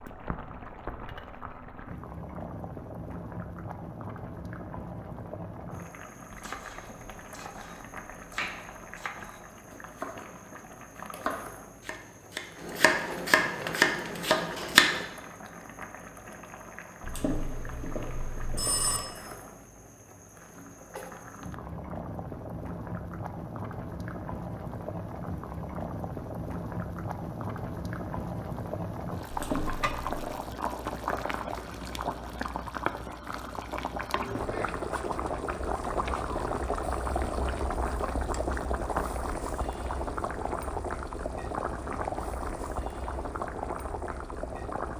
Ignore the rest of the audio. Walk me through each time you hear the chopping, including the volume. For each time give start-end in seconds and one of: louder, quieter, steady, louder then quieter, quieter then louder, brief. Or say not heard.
6.3-15.1 louder.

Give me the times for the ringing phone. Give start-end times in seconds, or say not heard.
17.0-19.0, 29.3-30.3.